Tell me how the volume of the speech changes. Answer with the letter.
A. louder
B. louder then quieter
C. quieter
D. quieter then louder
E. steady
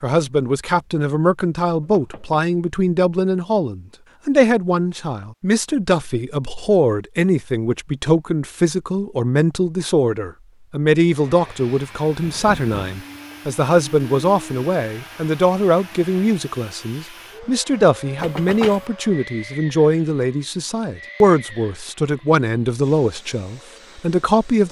E.